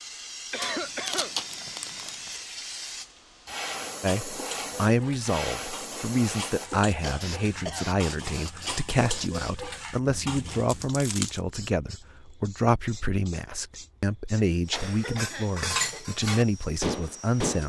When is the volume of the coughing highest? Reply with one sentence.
The loudest moment of the coughing is at 1 second.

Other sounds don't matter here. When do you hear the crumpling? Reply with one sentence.
The crumpling can be heard from 0.6 to 2.4 s and from 10.5 to 11.4 s.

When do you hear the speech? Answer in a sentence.
The speech can be heard from 4.0 to 17.6 s.